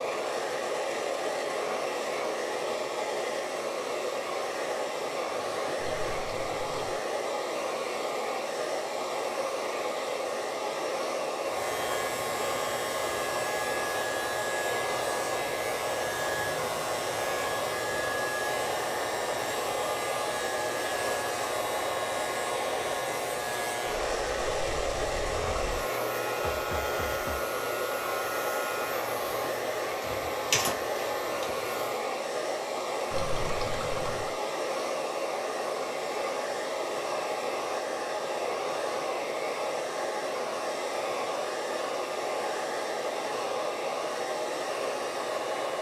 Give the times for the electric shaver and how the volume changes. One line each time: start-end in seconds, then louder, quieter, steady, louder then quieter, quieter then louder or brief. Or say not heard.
11.4-32.0 steady.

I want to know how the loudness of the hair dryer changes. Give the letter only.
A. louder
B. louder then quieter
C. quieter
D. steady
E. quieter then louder
D.